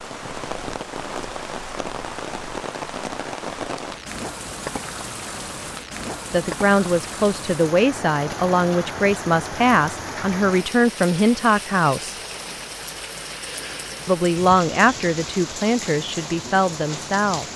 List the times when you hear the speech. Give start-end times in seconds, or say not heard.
6.3-12.2, 14.1-17.5.